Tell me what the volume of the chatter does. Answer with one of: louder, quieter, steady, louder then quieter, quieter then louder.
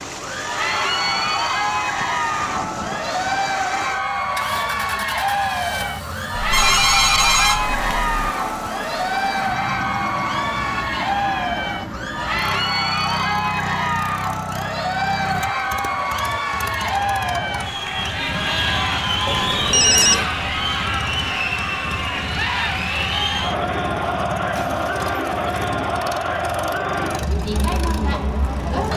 steady.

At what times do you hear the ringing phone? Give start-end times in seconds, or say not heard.
6.3-8.3, 19.2-20.2.